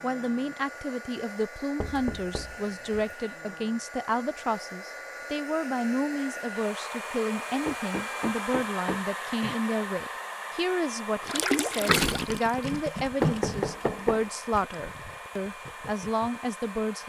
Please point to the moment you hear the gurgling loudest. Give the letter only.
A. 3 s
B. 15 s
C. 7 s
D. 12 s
D.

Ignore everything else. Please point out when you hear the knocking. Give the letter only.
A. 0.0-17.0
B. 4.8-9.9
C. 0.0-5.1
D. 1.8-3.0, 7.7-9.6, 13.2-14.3
D.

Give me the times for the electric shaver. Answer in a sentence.
You can't hear the electric shaver here.